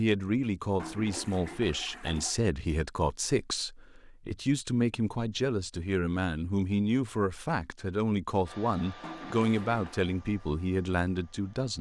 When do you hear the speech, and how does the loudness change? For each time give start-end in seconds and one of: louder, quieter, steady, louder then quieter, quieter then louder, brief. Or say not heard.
0.0-11.7 steady.